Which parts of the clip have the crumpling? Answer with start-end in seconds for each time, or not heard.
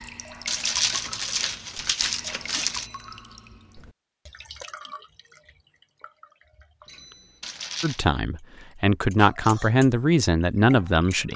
0.5-2.9, 7.4-8.1.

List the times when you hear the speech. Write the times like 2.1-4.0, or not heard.
7.8-11.3.